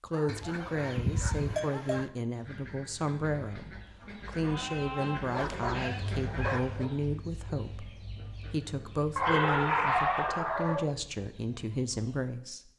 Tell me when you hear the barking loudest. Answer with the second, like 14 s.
10 s.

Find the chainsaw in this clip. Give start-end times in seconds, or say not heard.
not heard.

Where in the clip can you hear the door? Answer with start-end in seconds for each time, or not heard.
not heard.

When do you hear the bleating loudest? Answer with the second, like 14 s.
1 s.